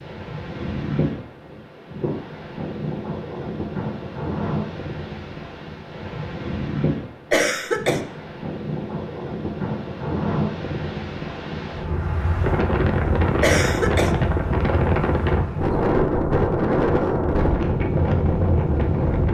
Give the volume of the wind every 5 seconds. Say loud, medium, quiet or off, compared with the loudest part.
medium, medium, loud, loud.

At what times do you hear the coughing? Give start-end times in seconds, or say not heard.
7.3-8.0, 13.4-14.1.